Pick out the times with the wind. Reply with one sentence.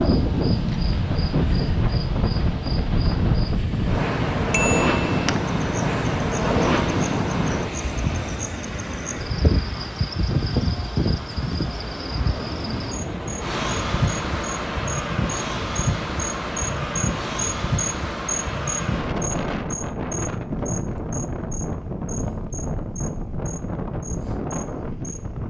The wind can be heard from 0.0 to 25.4 s.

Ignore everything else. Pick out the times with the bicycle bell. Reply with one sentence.
You can hear the bicycle bell from 4.5 to 5.2 s.